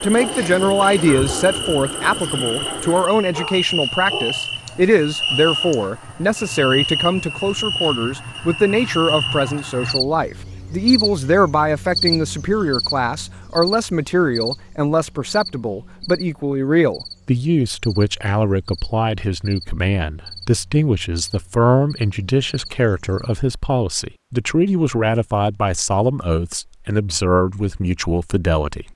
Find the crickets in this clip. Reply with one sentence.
You can hear the crickets from 0.0 to 23.4 s.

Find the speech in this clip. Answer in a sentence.
You can hear the speech from 0.0 to 28.9 s.